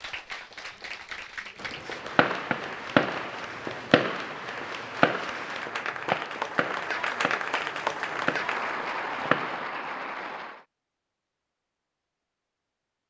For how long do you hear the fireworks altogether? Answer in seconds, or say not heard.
8 s.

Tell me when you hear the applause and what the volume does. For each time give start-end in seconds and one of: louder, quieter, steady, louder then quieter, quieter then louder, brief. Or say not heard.
0.0-10.7 louder.